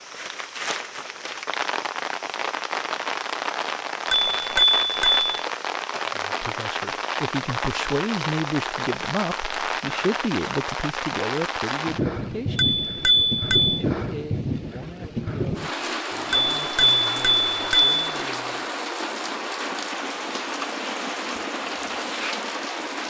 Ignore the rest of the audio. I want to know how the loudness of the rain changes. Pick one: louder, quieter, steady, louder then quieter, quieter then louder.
steady.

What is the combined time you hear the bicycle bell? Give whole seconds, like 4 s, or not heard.
4 s.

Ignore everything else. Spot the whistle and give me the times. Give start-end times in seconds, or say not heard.
not heard.